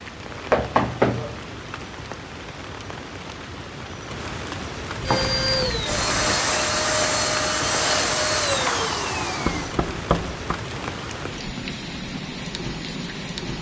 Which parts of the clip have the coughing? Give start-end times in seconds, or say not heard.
not heard.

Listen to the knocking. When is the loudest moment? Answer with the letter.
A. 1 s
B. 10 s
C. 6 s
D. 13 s
A.